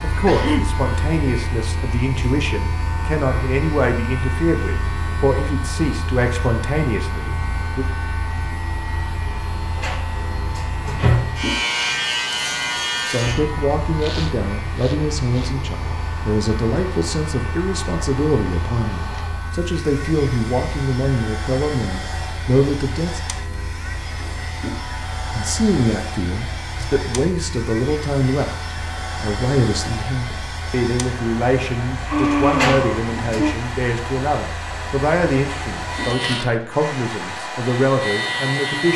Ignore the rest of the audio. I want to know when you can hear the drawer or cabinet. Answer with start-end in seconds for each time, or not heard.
9.8-11.3, 32.5-33.5.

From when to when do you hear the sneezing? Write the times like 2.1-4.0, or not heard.
0.2-0.8, 14.0-15.5, 32.0-33.5.